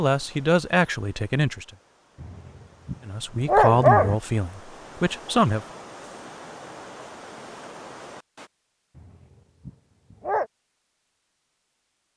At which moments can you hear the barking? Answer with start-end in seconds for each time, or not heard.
2.2-4.2, 8.9-10.4.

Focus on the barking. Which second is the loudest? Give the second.
4 s.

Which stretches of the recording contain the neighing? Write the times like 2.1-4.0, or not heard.
not heard.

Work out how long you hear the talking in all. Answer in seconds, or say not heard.
4 s.